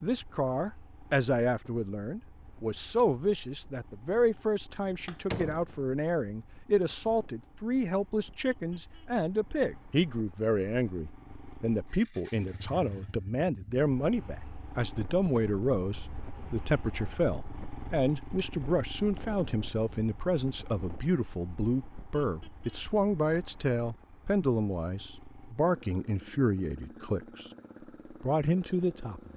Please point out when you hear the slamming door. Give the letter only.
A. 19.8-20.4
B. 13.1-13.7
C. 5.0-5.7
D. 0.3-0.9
C.